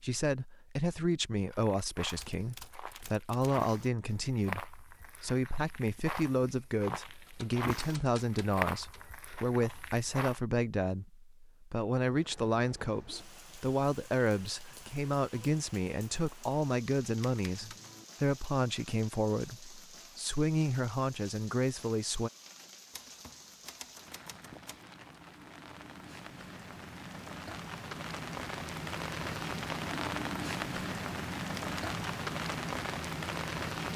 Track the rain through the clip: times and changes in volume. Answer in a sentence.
The rain can be heard from 12.1 to 33.9 s, getting louder.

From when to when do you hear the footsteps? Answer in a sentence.
The footsteps can be heard from 1.5 to 10.4 s.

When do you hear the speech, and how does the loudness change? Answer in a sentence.
The speech can be heard from 0.0 to 22.3 s, at a steady volume.